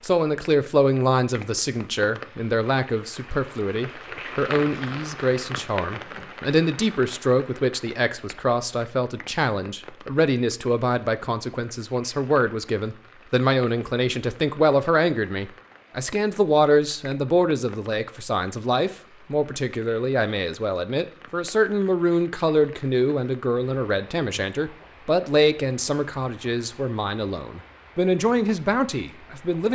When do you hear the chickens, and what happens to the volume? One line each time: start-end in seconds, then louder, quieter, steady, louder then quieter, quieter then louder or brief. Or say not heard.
not heard.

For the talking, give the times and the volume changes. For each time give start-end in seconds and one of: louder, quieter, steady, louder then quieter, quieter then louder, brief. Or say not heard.
0.0-29.6 steady.